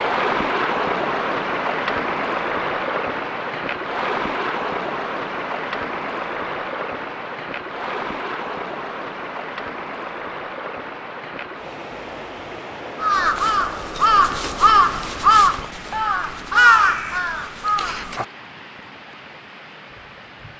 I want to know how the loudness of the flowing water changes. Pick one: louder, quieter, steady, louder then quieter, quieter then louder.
quieter.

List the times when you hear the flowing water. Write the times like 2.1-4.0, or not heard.
0.0-20.5.